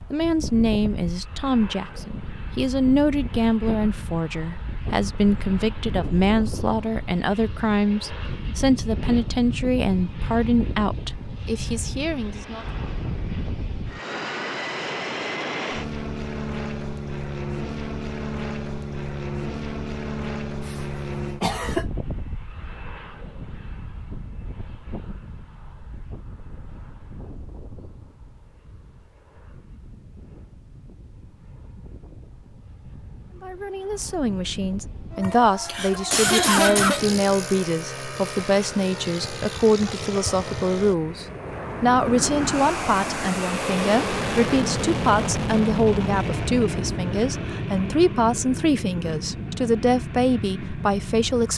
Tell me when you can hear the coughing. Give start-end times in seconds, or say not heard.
20.6-21.9, 35.2-37.0.